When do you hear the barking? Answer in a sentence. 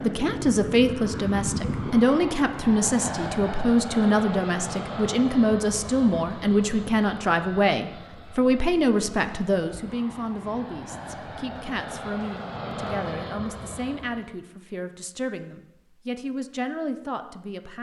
You can't hear the barking here.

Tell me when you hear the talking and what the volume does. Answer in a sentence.
The talking can be heard from 0.0 to 17.7 s, getting quieter.